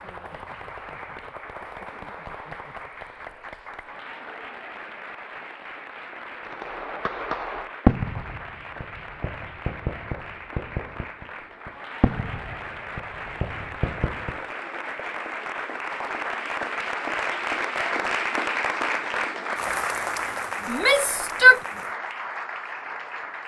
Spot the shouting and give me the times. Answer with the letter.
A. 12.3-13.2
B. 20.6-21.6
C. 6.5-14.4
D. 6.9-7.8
B.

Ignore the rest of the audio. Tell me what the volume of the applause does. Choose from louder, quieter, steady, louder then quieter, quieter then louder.
louder.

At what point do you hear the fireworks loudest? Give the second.
8 s.